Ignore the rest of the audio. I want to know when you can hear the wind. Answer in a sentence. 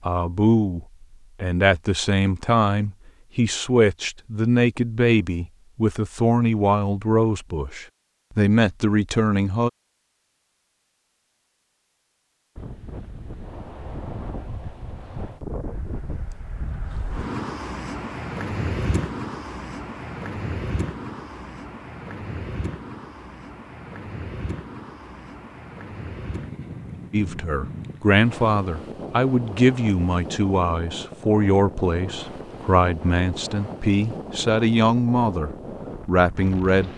You can hear the wind from 12.6 to 36.9 s.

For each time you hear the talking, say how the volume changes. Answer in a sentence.
The talking can be heard from 0.0 to 9.7 s, at a steady volume; and from 27.1 to 36.9 s, at a steady volume.